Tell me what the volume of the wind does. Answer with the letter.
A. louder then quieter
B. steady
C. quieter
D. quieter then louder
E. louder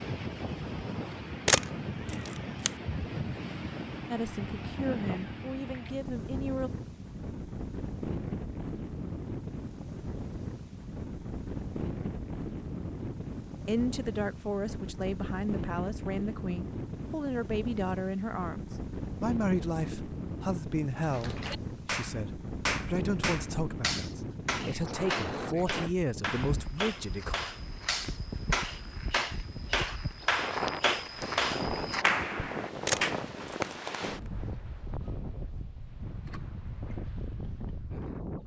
B.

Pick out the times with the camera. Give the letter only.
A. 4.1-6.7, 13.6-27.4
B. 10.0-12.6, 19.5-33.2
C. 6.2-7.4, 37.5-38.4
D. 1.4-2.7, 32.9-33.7
D.